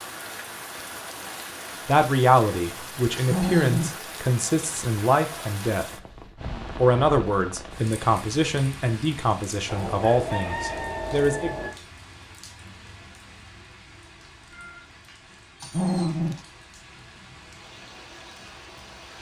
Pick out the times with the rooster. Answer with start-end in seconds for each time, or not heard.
9.7-11.7.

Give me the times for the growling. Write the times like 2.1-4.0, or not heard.
3.1-4.0, 15.6-16.4.